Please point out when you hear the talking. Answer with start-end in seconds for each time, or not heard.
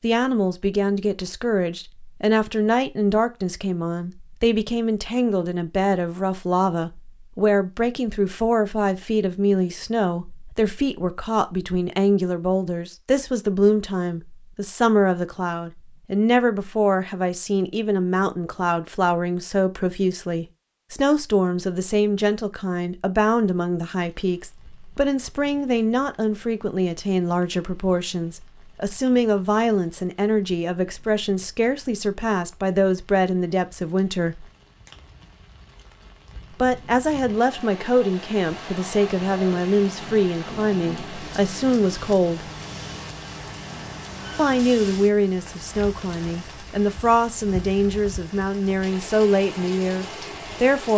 0.0-34.5, 36.5-42.5, 44.4-50.9.